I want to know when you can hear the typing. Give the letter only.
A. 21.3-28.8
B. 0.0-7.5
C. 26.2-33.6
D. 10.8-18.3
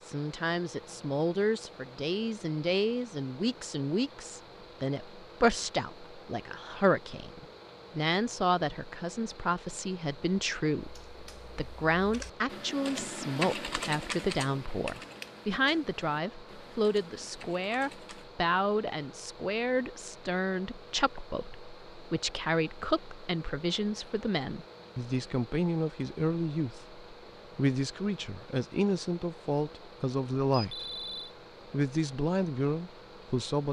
D.